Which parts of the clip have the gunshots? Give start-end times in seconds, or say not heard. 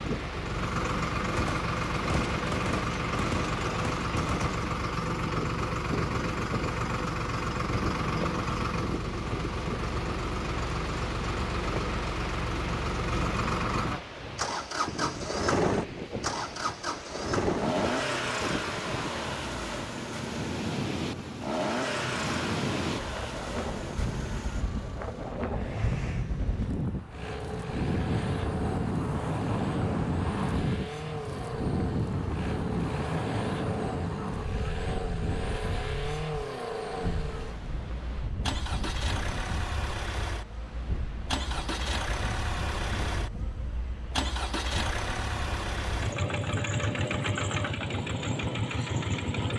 1.3-4.7.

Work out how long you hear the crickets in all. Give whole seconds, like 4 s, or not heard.
not heard.